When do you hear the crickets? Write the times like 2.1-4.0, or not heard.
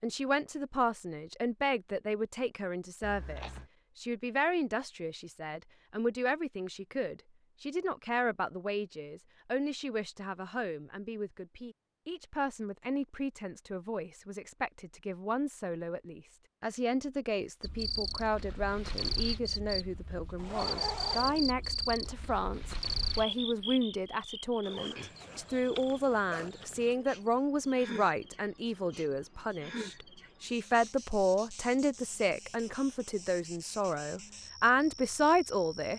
17.6-35.9.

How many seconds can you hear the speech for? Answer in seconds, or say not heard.
36 s.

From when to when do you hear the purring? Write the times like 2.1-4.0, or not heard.
not heard.